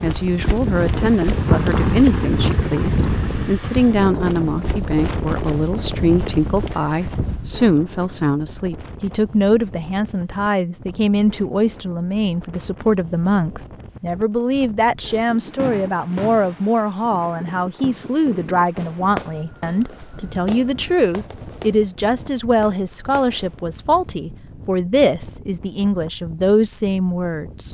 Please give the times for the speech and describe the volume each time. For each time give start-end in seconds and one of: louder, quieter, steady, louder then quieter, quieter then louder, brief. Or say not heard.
0.0-27.7 steady.